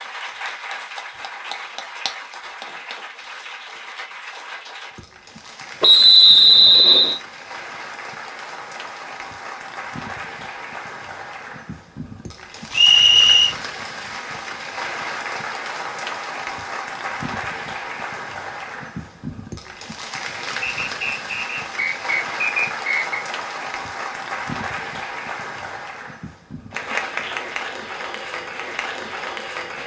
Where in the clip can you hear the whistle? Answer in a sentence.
The whistle can be heard from 5.8 to 7.2 s, from 12.7 to 13.6 s and from 20.6 to 23.2 s.